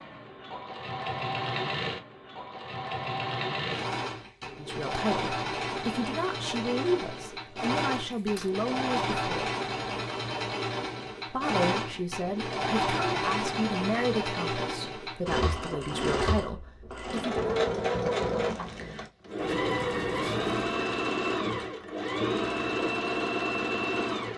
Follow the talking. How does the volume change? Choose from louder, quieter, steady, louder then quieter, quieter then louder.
steady.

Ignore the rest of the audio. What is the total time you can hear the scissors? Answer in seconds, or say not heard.
2 s.